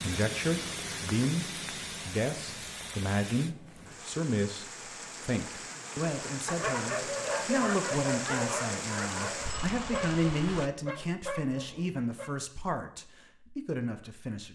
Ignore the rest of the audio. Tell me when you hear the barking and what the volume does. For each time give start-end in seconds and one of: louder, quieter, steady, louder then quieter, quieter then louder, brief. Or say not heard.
6.2-12.3 quieter.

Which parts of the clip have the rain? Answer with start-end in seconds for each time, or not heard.
0.0-10.7.